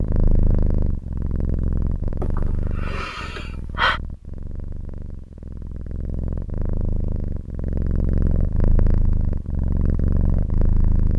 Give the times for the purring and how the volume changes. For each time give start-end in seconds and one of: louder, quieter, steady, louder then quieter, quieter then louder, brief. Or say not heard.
0.0-11.1 quieter then louder.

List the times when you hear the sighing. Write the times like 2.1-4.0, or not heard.
2.2-4.0.